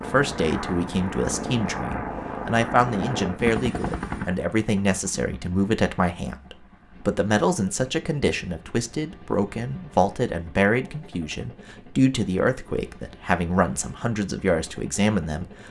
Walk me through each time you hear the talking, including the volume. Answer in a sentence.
You can hear the talking from 0.0 to 15.6 s, at a steady volume.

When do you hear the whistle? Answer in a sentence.
The whistle can't be heard in this clip.